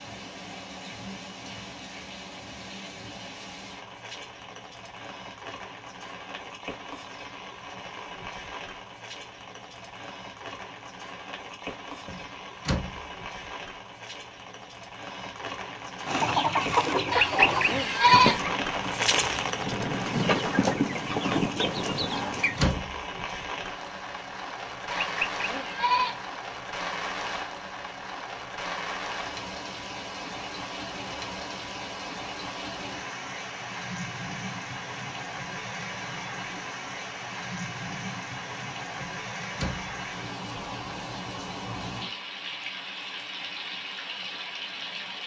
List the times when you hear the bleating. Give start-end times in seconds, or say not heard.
17.1-18.4, 24.9-26.2.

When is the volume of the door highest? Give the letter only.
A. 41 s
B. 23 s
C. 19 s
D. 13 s
B.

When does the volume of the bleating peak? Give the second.
18 s.